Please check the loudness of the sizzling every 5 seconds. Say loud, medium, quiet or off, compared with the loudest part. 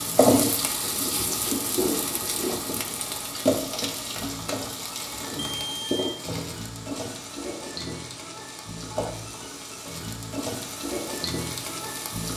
loud, medium, medium.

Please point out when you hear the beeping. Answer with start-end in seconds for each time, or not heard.
5.4-6.1.